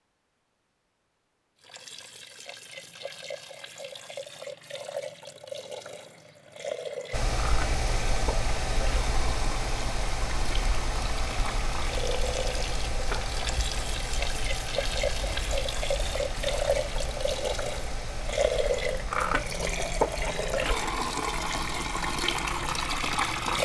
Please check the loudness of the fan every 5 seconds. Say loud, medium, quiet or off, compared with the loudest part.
off, loud, loud, medium, medium.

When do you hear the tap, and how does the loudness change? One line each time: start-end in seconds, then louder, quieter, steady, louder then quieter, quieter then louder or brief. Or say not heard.
1.6-23.6 louder.